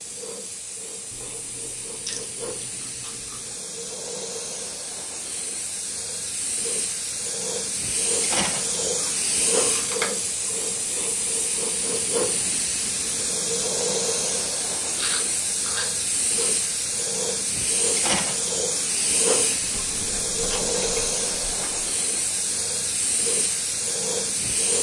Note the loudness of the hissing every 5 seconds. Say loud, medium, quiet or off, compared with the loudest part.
medium, loud, loud, loud, loud.